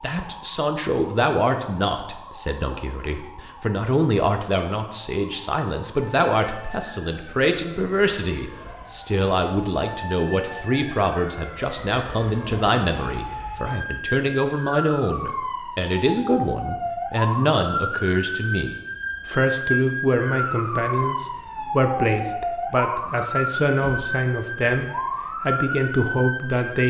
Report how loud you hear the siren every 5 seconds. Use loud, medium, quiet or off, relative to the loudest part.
quiet, quiet, medium, loud, loud, loud.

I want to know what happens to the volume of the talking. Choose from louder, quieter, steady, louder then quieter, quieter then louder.
steady.